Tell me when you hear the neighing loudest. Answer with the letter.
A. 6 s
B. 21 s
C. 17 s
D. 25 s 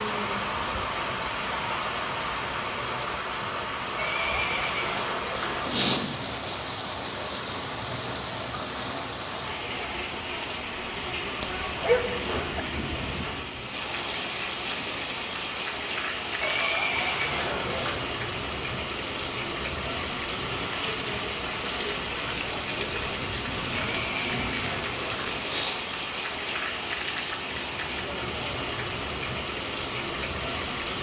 A.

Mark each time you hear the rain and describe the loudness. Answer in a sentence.
The rain can be heard from 0.0 to 30.9 s, at a steady volume.